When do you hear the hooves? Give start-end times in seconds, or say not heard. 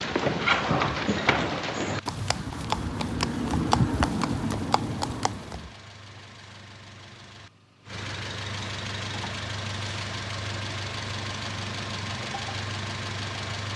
0.0-5.7.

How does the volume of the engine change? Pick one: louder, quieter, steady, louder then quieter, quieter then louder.
louder.